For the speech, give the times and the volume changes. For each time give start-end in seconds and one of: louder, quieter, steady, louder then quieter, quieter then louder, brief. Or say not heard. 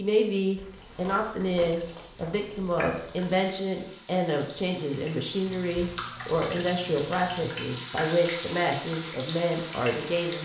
0.0-10.4 steady.